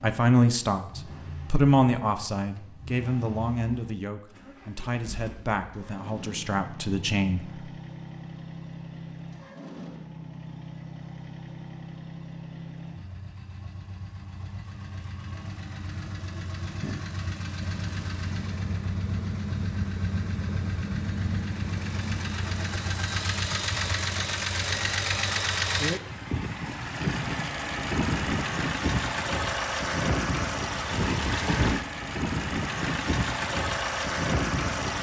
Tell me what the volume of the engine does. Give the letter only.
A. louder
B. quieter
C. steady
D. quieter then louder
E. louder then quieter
A.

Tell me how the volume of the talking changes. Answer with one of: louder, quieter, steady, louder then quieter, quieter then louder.
quieter.